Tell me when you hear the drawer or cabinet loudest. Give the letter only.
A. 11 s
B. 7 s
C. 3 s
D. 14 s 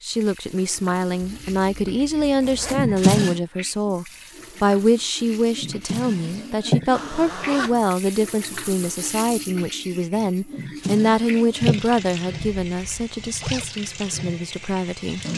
C.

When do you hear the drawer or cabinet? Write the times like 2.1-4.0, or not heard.
2.7-3.4, 5.5-6.8, 10.5-11.8.